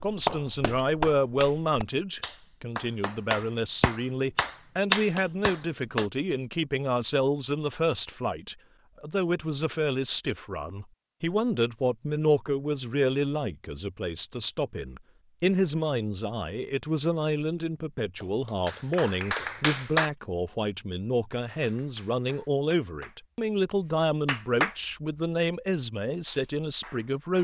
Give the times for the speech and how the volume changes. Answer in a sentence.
You can hear the speech from 0.0 to 27.3 s, at a steady volume.